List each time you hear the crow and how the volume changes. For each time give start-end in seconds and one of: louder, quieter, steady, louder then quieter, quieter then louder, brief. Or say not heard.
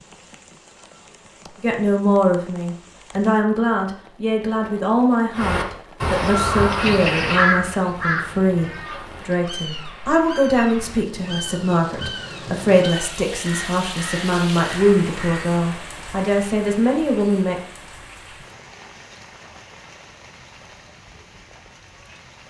5.3-15.4 quieter.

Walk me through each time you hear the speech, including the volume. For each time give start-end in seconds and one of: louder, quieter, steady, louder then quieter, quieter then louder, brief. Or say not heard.
1.6-17.6 steady.